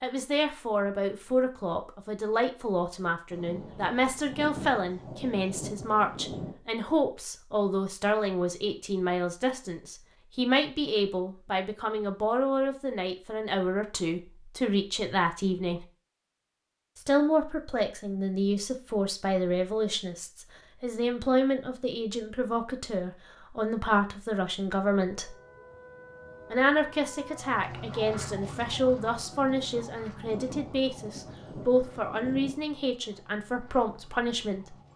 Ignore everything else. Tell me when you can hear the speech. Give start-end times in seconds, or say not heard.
0.0-15.8, 16.9-25.4, 26.5-34.8.